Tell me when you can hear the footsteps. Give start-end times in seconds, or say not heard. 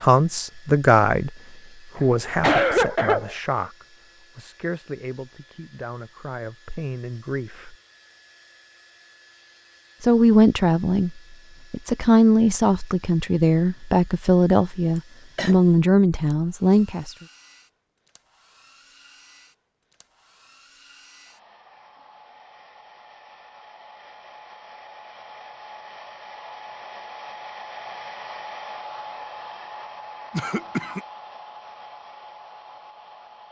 not heard.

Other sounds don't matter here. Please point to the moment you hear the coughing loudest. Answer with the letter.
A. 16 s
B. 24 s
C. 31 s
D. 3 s
D.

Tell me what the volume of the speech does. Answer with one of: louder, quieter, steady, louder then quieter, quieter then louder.
quieter then louder.